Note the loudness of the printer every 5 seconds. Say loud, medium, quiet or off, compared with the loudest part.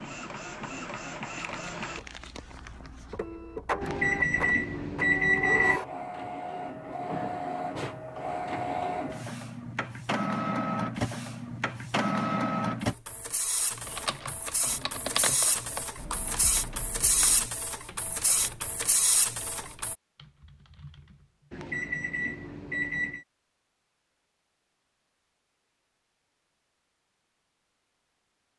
medium, loud, loud, loud, off, off.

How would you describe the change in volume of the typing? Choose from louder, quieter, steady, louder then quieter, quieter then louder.
quieter.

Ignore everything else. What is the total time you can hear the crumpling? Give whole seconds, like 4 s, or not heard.
2 s.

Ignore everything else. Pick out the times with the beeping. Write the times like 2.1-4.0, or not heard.
3.8-5.8, 21.5-23.2.